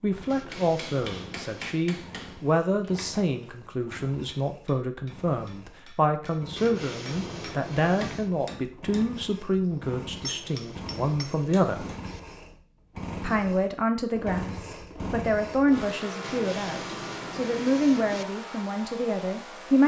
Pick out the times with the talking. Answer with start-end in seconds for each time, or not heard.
0.0-11.8, 13.2-19.8.